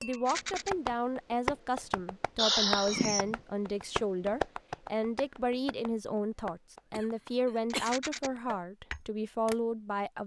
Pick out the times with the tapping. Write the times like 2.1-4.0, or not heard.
0.0-9.6.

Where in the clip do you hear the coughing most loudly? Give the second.
3 s.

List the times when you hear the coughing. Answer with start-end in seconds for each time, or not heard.
2.4-3.4, 6.9-8.0.